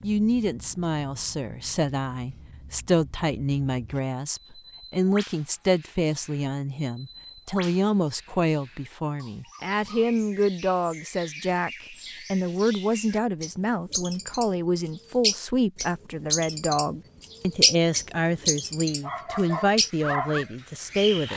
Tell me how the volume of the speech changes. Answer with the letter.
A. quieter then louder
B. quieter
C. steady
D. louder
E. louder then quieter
C.